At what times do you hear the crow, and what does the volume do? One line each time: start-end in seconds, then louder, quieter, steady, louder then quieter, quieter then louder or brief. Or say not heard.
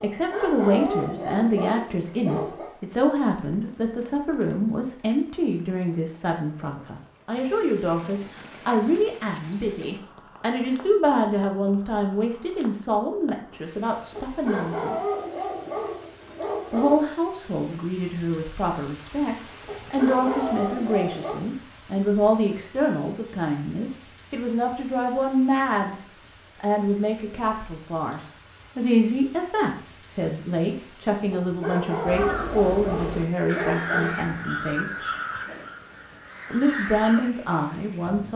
32.0-37.3 louder then quieter.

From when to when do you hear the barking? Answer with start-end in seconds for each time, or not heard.
0.0-2.7, 14.1-17.1, 19.6-21.4, 31.3-34.2.